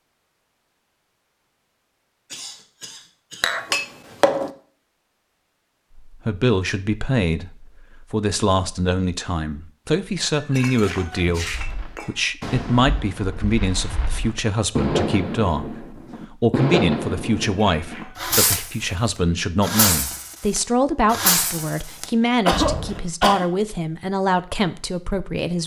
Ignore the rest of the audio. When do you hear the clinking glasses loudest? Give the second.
4 s.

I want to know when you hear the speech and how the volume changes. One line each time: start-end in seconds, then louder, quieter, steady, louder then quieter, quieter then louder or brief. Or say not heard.
6.0-25.6 steady.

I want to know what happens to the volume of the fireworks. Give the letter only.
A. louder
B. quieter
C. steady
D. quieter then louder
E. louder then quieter
A.